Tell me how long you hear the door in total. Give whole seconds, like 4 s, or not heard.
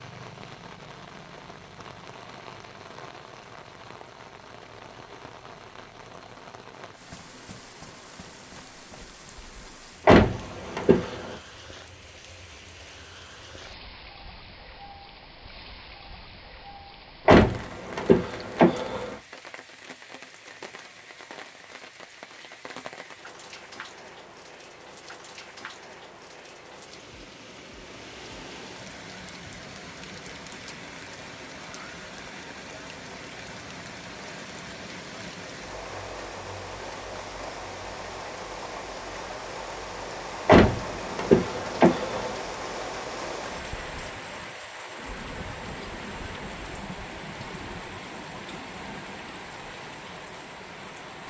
5 s.